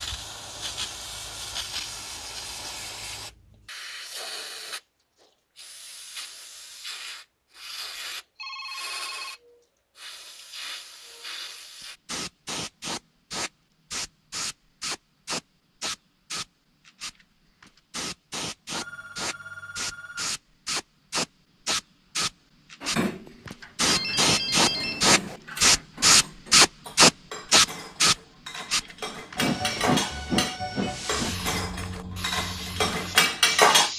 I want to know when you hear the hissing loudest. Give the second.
27 s.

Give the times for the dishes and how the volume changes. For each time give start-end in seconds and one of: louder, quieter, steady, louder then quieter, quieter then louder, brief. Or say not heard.
22.8-33.9 louder.